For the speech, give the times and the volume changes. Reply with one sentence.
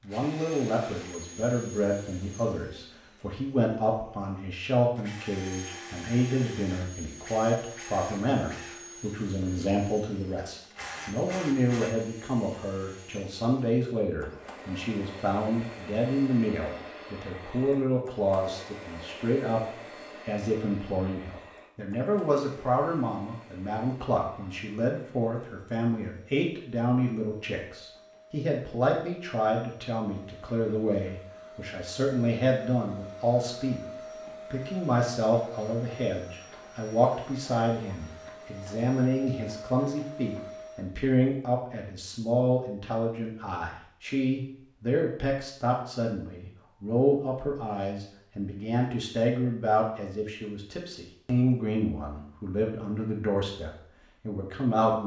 You can hear the speech from 0.0 to 55.0 s, at a steady volume.